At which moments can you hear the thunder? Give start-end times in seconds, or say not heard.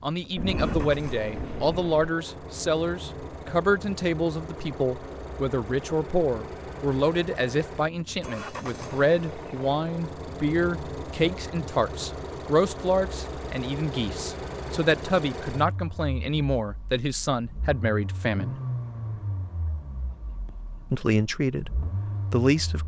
0.3-2.1.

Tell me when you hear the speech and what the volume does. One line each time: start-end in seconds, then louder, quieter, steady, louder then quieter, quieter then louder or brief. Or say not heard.
0.0-18.6 steady
20.9-22.8 brief.